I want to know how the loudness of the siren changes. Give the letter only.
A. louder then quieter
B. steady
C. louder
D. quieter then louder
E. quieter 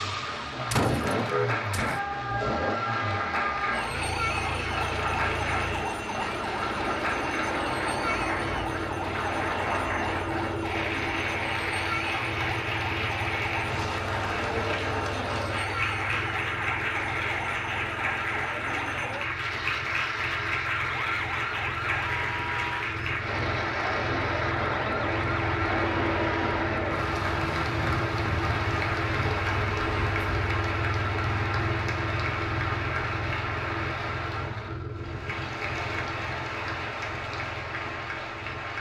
E.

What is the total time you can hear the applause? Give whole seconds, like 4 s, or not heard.
39 s.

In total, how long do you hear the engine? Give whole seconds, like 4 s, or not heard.
39 s.